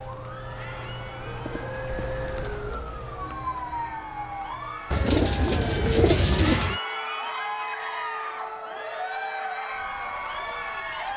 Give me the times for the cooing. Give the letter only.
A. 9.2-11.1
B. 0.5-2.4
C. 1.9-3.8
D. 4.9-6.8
D.